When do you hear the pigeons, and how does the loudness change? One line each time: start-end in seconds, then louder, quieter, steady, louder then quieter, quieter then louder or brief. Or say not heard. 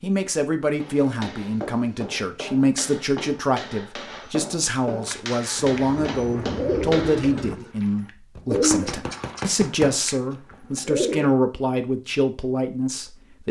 5.0-11.3 louder then quieter.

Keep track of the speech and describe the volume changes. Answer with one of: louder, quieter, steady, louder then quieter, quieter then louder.
steady.